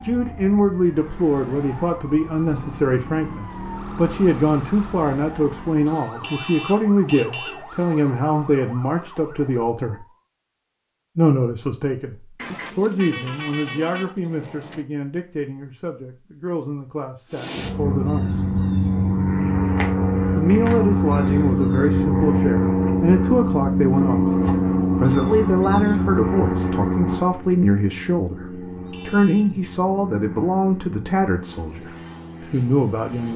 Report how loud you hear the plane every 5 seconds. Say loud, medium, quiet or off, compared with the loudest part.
off, off, off, loud, loud, medium, quiet.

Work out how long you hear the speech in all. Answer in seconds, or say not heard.
30 s.